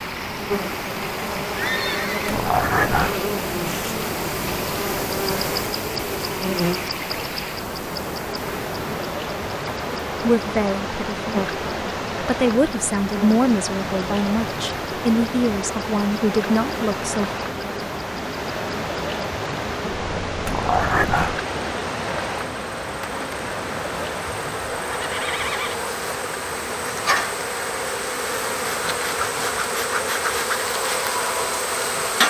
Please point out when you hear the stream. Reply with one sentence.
You can hear the stream from 0.0 to 32.2 s.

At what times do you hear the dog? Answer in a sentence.
You can hear the dog from 2.2 to 3.2 s and from 20.4 to 21.4 s.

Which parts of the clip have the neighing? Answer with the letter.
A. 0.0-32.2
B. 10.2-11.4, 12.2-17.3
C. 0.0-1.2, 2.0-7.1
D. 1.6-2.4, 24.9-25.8
D.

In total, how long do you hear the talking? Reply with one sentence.
You can hear the talking for 6 seconds altogether.